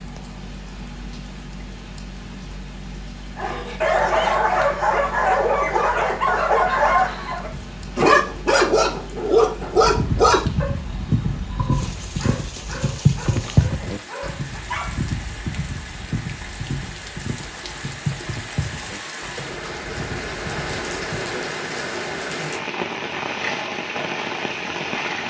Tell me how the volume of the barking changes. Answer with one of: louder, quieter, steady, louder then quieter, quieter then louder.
quieter.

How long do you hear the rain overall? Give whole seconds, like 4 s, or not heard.
25 s.